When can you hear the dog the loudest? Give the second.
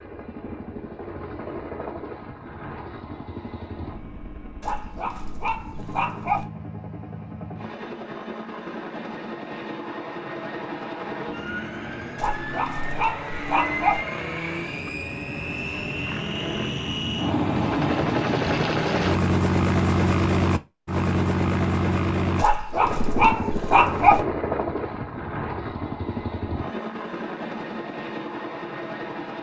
24 s.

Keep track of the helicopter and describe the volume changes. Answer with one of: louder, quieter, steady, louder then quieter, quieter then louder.
louder then quieter.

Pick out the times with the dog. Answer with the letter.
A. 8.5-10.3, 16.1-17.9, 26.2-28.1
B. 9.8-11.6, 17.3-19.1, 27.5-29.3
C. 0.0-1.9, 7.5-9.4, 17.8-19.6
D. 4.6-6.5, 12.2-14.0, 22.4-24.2
D.